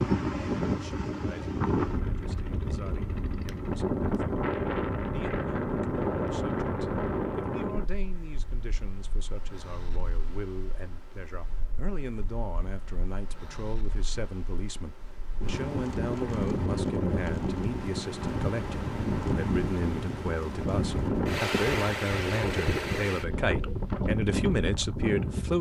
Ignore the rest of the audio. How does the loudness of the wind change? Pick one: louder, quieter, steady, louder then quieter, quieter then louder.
quieter then louder.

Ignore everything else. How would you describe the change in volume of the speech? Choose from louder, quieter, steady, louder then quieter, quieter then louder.
louder.